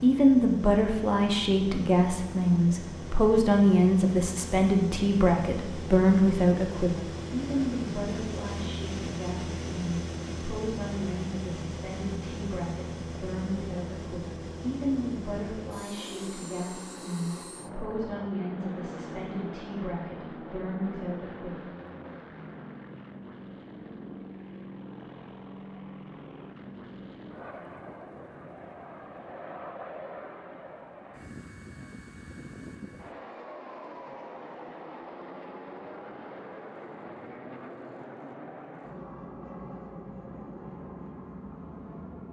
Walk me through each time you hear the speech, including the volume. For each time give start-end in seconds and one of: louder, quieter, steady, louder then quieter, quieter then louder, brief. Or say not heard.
0.0-21.6 quieter.